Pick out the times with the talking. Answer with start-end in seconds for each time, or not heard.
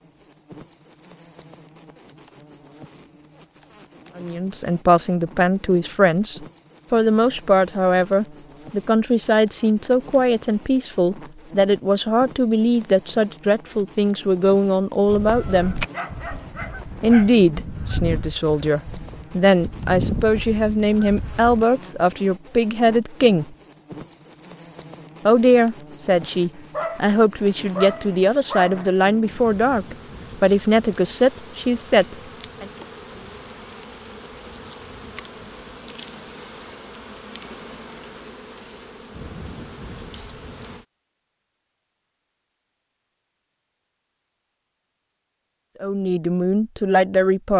4.2-15.8, 17.0-23.4, 25.2-32.6, 45.8-47.5.